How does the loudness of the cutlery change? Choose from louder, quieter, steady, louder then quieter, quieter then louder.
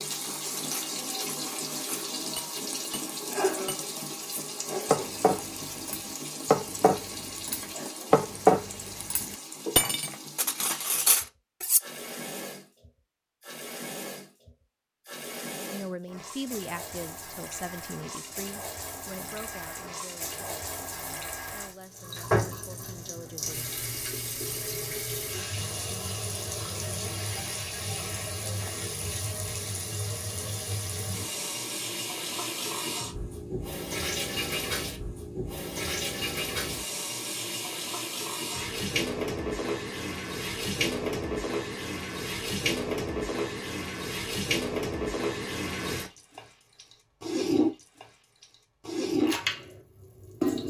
louder then quieter.